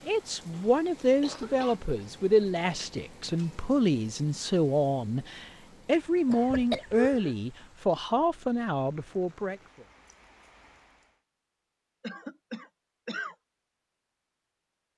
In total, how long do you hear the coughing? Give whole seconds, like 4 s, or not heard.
4 s.